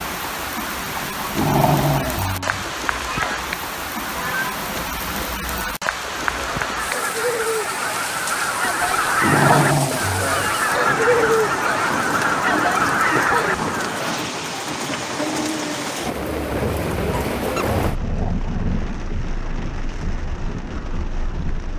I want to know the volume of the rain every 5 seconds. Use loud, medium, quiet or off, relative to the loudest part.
loud, loud, loud, loud, medium.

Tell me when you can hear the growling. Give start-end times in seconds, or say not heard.
0.9-2.8, 9.0-10.6, 16.5-19.0.